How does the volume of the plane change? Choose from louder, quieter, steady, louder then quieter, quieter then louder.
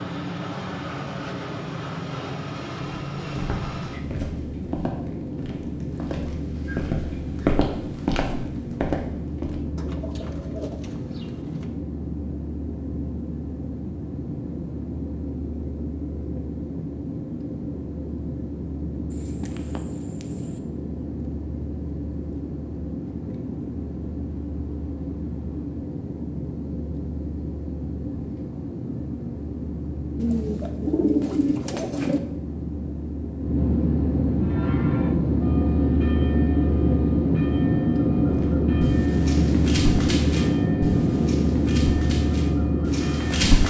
louder.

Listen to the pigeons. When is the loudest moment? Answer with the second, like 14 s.
31 s.